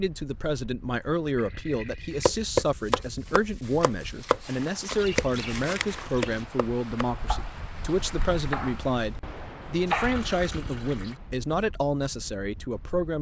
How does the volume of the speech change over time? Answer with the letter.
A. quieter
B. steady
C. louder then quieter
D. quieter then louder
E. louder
B.